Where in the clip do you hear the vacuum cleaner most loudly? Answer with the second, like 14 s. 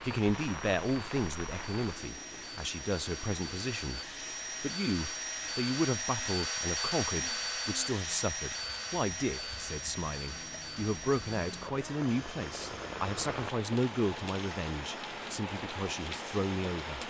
7 s.